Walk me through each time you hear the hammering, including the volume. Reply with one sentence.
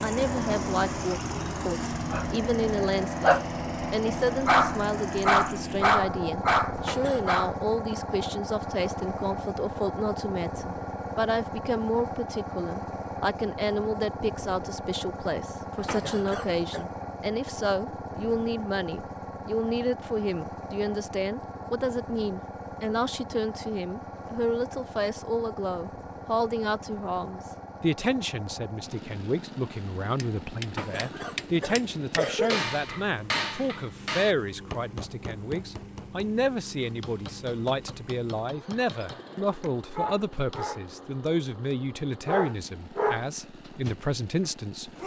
You can hear the hammering from 30.1 to 40.7 s, getting louder then quieter.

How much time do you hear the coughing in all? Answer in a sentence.
The coughing can be heard for 4 seconds in total.